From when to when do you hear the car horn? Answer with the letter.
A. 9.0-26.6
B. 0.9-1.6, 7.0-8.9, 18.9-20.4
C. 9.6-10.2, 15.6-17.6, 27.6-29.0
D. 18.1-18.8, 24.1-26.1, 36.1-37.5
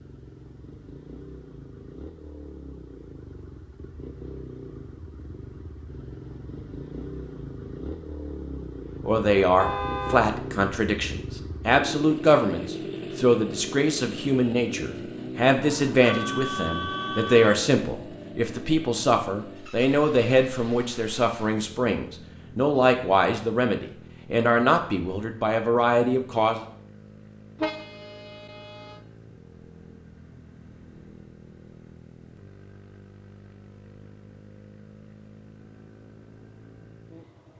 C.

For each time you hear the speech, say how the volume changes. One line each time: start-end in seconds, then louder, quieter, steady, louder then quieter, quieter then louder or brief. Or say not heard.
9.0-26.6 steady.